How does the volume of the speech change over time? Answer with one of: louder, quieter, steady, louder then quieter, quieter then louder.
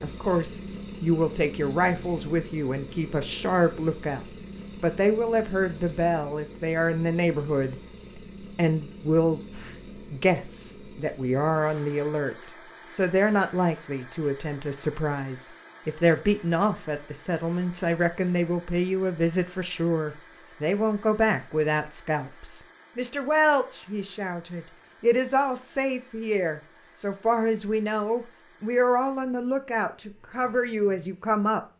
steady.